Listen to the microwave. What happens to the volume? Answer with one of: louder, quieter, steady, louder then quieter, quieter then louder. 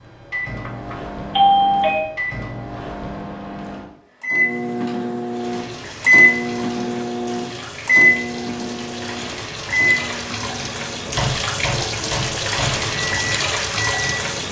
louder then quieter.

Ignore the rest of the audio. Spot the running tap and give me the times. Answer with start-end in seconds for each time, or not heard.
5.3-14.4.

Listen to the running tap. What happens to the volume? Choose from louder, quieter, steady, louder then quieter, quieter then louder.
louder.